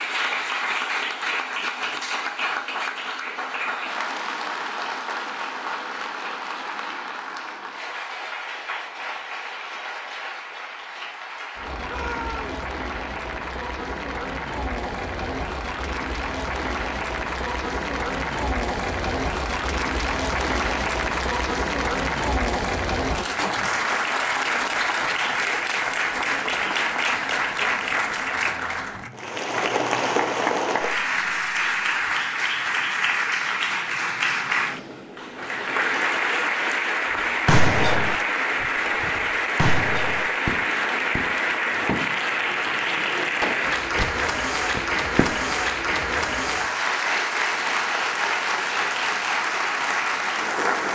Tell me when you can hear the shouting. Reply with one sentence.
The shouting can be heard from 11.8 to 12.6 s.